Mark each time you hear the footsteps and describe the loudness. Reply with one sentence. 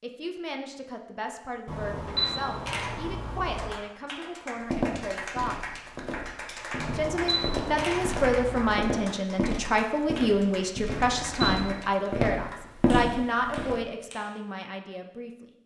You can hear the footsteps from 4.6 to 13.8 s, getting louder.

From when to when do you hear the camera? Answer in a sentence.
The camera can be heard from 1.6 to 3.7 s, from 6.8 to 8.8 s and from 10.9 to 11.8 s.